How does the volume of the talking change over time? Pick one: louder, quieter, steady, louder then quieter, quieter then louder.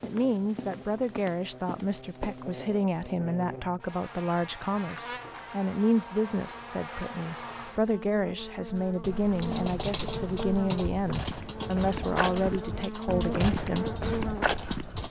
steady.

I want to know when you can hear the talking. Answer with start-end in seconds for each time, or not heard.
0.0-13.8.